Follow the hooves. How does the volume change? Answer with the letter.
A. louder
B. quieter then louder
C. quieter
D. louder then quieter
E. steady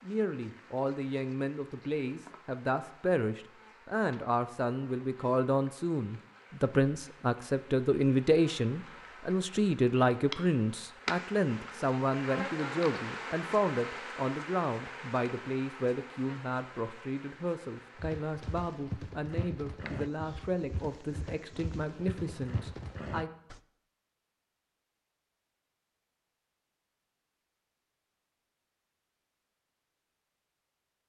B.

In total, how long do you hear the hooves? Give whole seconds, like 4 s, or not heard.
6 s.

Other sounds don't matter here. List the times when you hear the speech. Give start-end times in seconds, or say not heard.
0.0-23.3.